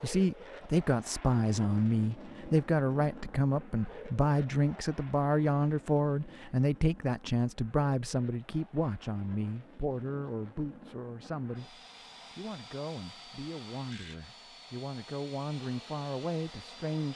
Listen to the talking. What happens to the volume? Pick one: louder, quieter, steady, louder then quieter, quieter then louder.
quieter.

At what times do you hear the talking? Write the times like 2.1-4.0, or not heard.
0.0-17.1.